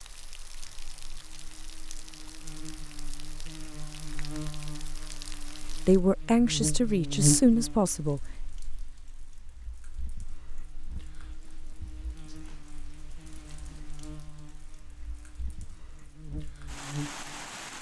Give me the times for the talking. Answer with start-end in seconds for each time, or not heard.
5.7-8.2.